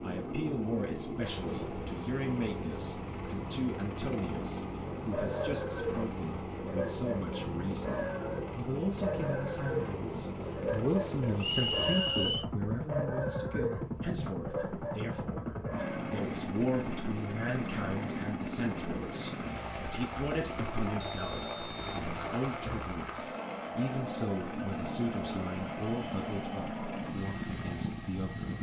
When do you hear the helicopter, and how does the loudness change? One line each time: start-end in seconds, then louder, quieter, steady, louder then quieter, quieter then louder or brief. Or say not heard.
0.0-28.5 steady.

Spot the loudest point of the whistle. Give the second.
12 s.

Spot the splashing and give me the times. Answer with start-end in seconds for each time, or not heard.
not heard.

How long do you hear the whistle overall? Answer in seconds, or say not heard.
2 s.